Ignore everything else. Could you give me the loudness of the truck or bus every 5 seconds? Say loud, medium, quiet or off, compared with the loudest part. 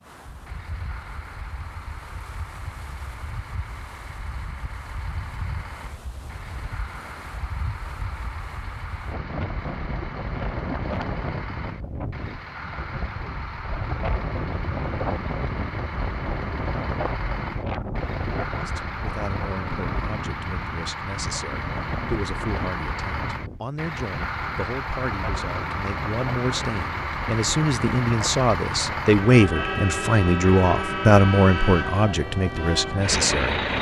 quiet, quiet, medium, medium, medium, loud, loud.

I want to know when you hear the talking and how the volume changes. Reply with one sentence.
The talking can be heard from 18.6 to 33.6 s, getting louder.